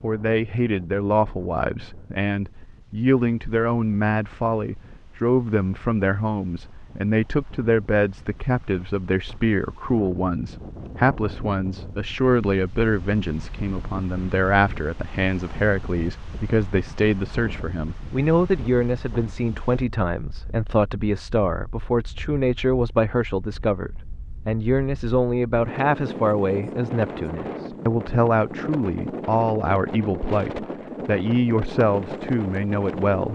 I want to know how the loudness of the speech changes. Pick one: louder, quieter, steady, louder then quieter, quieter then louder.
steady.